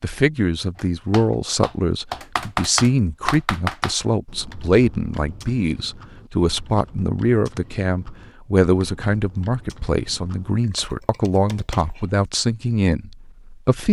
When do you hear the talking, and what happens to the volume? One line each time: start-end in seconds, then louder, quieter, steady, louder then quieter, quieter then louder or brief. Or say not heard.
0.0-13.8 steady.